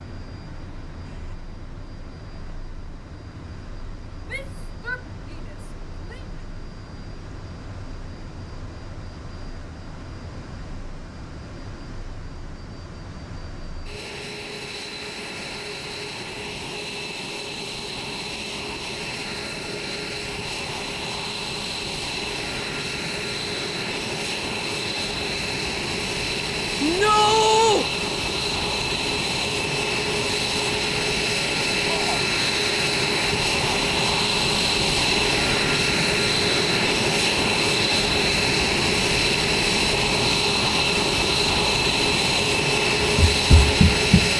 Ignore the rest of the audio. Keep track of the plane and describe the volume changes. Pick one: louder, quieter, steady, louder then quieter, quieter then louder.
louder.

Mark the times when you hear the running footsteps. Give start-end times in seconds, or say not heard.
43.0-44.3.